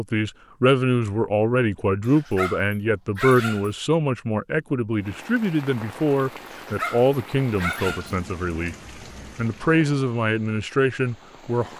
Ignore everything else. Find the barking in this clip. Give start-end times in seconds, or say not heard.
2.0-3.7, 6.5-8.2.